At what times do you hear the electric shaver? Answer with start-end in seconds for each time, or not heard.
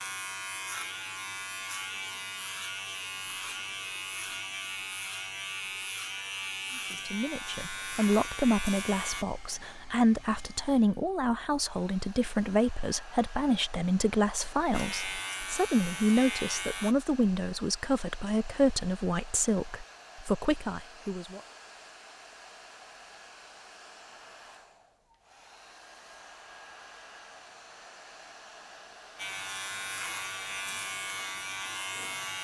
0.0-9.2, 14.7-16.9, 29.1-32.4.